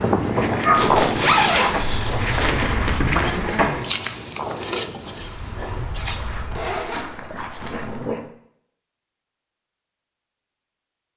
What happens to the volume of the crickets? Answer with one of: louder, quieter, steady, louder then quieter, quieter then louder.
louder then quieter.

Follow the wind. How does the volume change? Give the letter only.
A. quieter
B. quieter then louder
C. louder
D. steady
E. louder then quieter
A.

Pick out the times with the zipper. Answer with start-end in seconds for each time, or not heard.
0.8-2.6, 6.3-8.1.